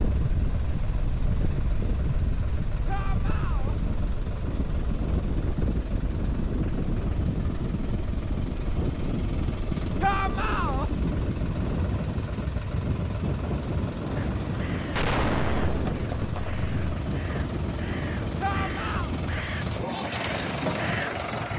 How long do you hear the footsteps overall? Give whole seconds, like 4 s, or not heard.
not heard.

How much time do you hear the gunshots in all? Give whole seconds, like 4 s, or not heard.
2 s.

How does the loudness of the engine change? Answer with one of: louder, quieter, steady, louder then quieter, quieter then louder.
louder.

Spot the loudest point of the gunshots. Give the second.
15 s.